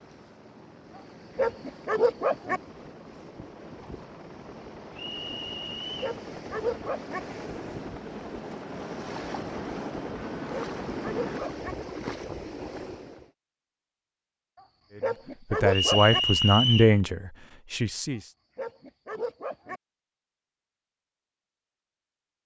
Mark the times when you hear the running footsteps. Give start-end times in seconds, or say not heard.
not heard.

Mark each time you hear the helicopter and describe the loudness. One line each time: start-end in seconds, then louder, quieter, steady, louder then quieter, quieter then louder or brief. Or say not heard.
0.0-11.4 louder.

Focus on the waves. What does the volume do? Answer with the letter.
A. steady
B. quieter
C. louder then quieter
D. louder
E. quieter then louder
D.